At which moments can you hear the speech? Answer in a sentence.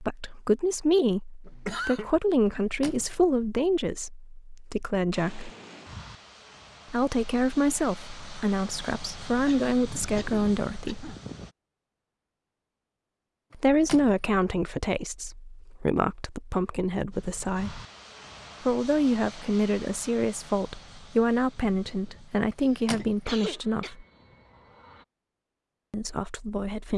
The speech can be heard from 0.0 to 5.5 s, from 6.9 to 11.2 s, from 13.6 to 17.8 s, from 18.6 to 24.1 s and from 25.9 to 26.9 s.